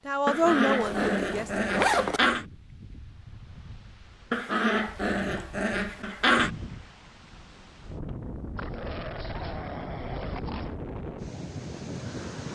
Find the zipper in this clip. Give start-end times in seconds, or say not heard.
0.4-2.2.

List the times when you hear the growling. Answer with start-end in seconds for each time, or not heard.
0.2-2.5, 4.3-6.5, 8.6-10.8.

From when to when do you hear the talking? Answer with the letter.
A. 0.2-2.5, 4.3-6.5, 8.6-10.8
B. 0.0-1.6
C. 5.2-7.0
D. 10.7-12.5
B.